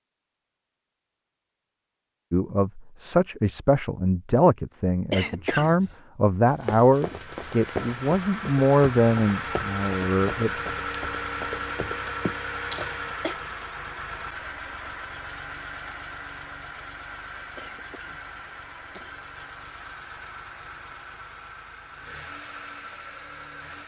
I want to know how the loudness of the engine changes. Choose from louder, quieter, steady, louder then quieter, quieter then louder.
quieter.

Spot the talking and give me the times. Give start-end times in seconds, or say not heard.
2.3-10.5.